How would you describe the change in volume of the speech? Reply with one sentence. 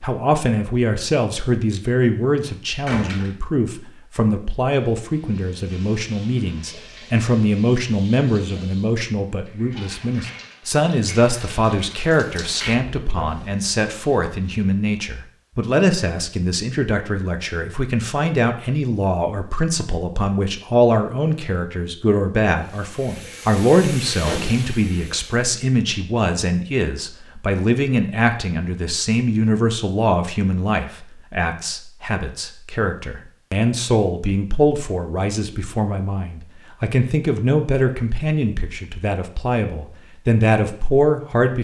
The volume of the speech stays about the same.